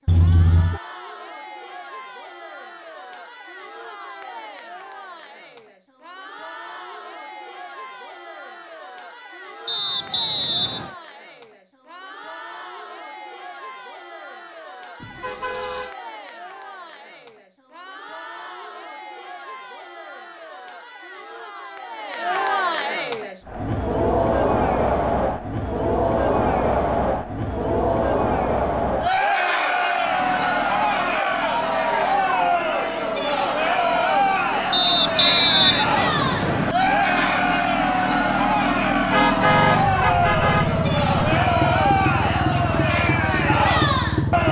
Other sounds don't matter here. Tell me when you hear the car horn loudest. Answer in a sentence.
The loudest moment of the car horn is at 40 seconds.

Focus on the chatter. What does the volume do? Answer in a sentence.
The loudness of the chatter goes up.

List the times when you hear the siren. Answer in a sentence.
You can't hear the siren here.